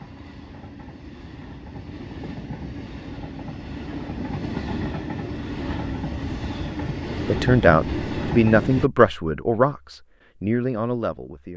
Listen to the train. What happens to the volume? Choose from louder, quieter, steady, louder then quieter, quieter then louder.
louder.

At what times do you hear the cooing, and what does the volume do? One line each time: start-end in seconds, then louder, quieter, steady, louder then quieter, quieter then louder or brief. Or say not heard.
not heard.